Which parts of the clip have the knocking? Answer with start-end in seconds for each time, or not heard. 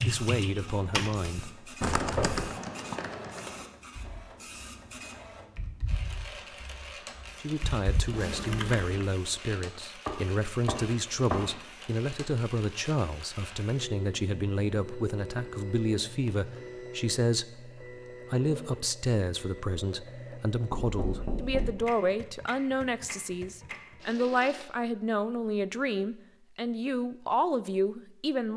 1.8-2.5, 10.1-11.6, 20.7-21.8.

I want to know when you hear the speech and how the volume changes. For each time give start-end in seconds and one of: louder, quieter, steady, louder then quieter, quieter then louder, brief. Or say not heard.
0.0-1.6 brief
7.4-28.5 steady.